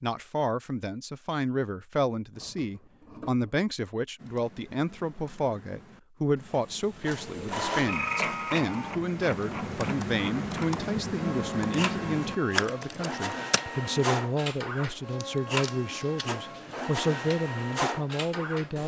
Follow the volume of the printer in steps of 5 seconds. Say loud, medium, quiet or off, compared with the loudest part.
off, loud, loud, loud.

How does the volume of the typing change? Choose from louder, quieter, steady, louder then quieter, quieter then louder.
louder.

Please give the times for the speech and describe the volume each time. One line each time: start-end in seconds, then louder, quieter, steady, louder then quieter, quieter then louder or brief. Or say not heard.
0.0-18.8 steady.